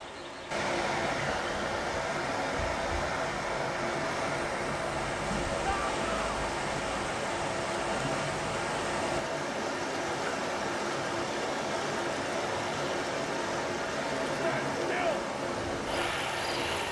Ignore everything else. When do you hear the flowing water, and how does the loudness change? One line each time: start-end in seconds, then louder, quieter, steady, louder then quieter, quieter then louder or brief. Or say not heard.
0.0-16.8 steady.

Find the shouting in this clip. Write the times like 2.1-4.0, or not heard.
5.6-6.3, 14.3-15.2.